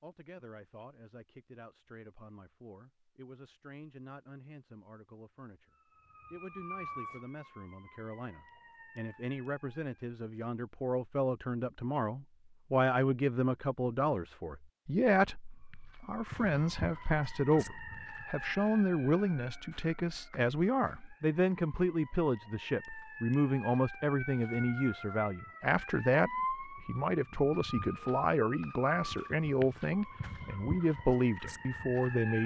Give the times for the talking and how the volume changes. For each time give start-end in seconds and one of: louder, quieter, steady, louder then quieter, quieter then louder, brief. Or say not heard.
0.0-5.7 steady
6.3-32.4 louder.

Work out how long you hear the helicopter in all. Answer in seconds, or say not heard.
not heard.